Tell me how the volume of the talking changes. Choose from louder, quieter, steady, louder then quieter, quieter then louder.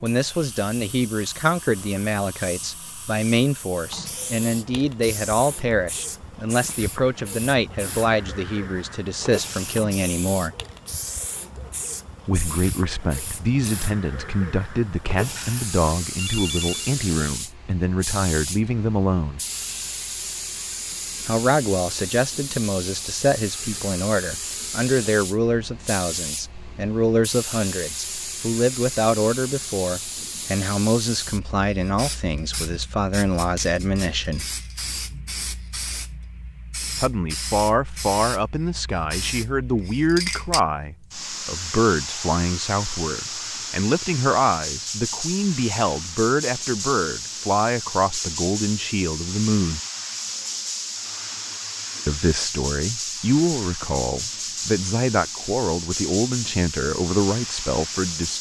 steady.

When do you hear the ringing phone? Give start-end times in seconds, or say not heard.
15.3-16.9.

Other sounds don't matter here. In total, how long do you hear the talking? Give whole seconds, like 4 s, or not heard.
50 s.